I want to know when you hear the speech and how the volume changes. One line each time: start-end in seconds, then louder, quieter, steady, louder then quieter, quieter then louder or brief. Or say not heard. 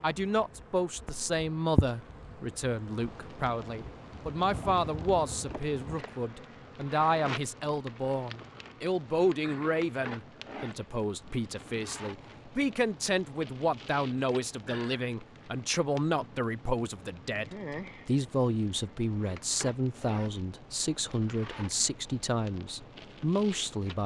0.0-24.0 steady.